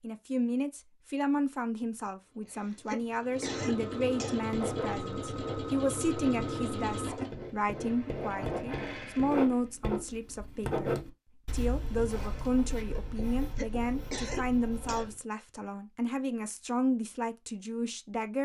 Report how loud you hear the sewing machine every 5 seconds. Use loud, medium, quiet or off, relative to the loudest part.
loud, loud, off, off.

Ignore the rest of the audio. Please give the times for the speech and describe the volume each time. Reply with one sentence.
The speech can be heard from 0.0 to 18.4 s, at a steady volume.